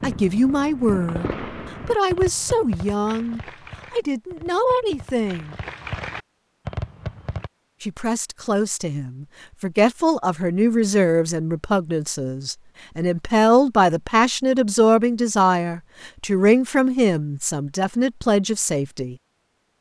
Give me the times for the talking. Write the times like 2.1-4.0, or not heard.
0.0-5.6, 7.8-19.1.